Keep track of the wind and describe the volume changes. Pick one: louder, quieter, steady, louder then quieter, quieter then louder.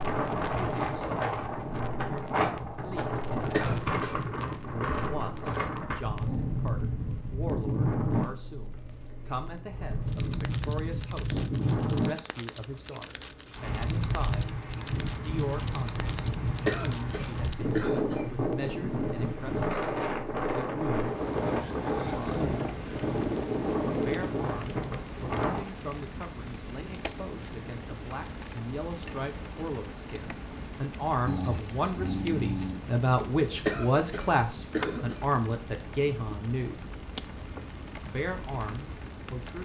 steady.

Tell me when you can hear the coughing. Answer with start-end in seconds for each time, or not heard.
3.5-4.2, 16.6-18.2, 33.6-35.2.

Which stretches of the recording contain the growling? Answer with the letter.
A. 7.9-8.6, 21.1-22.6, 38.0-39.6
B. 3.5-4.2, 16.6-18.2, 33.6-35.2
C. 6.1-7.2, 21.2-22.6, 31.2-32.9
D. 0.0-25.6
C.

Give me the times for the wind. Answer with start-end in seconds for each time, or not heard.
0.0-25.6.